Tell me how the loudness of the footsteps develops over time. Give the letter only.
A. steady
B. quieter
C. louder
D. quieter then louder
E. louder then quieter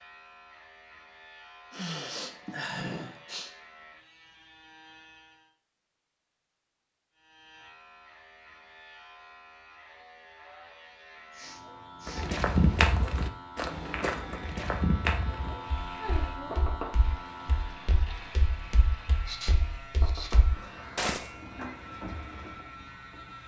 D.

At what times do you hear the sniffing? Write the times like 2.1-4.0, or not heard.
1.7-3.5, 11.3-12.3, 19.2-20.4.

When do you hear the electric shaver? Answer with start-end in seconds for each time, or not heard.
0.0-5.5, 7.1-23.4.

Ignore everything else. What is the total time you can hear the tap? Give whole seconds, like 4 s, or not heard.
8 s.